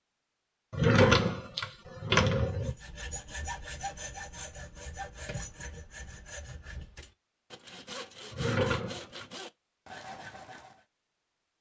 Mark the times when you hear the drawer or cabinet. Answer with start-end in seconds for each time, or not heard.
0.7-2.8, 8.3-9.2.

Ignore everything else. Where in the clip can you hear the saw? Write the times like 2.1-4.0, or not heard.
2.5-10.8.